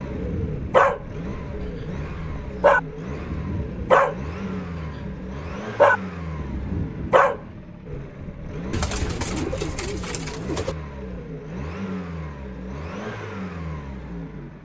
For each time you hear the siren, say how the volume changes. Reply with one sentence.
You can't hear the siren here.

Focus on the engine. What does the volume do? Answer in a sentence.
The volume of the engine stays about the same.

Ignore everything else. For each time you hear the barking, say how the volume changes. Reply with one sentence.
The barking can be heard from 0.0 to 7.4 s, getting quieter then louder.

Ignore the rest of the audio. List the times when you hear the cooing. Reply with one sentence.
You can hear the cooing from 8.7 to 10.8 s.